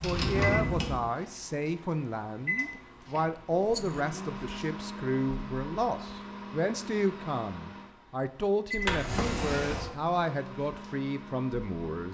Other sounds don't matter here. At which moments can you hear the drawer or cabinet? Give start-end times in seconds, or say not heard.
0.0-1.1, 8.8-9.9.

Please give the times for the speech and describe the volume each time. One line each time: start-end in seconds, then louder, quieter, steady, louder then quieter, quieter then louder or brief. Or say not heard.
0.0-12.0 steady.